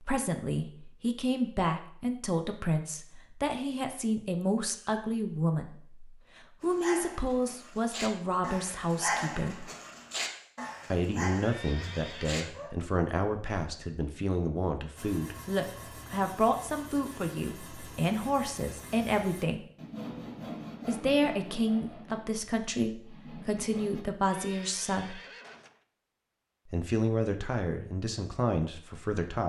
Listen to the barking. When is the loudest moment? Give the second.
9 s.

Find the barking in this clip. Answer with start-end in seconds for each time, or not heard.
6.6-12.7.